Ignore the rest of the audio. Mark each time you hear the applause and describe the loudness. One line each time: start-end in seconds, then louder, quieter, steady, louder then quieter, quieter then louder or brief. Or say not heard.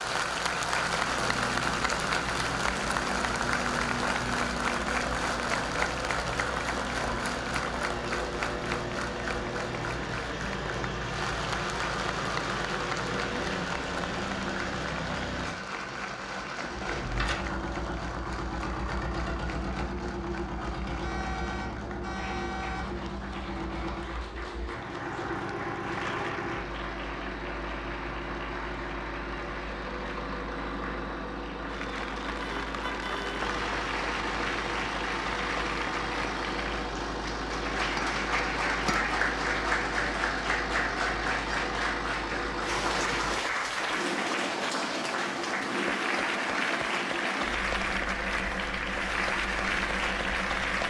0.0-50.8 quieter then louder.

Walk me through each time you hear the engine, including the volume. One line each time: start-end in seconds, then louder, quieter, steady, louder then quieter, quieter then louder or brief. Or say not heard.
0.0-50.8 steady.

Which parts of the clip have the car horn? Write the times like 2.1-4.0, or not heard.
21.0-22.9, 32.4-33.5.